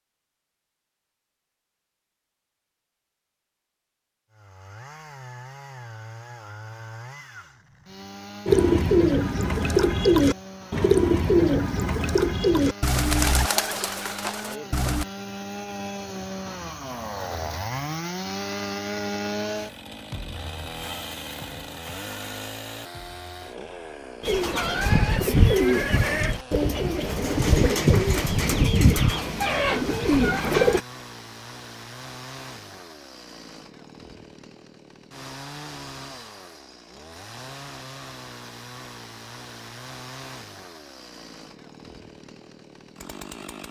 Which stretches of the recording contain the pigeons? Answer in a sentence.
You can hear the pigeons from 8.4 to 15.1 s and from 24.2 to 30.8 s.